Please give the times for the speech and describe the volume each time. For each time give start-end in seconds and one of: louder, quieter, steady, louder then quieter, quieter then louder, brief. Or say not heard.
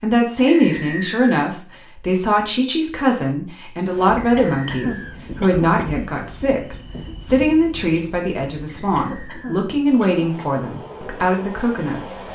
0.0-12.2 steady.